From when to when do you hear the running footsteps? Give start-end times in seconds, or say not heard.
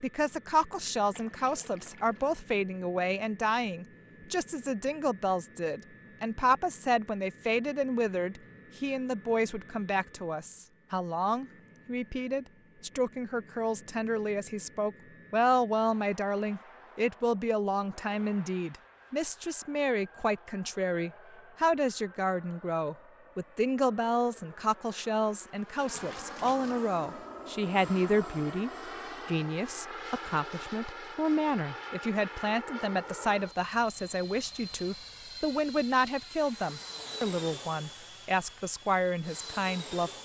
not heard.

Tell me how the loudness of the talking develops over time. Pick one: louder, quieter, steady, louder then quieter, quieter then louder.
steady.